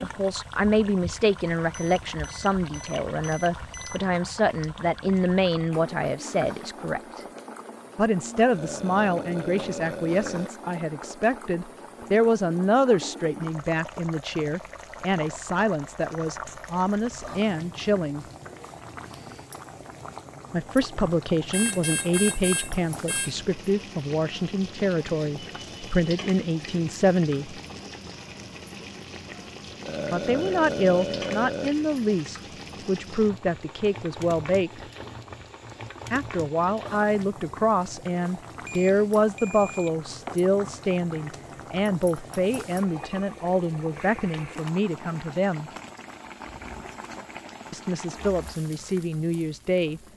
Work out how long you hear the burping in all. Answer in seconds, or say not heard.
4 s.